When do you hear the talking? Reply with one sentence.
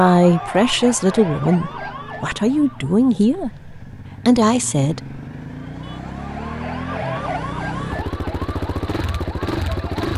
The talking can be heard from 0.0 to 5.2 s.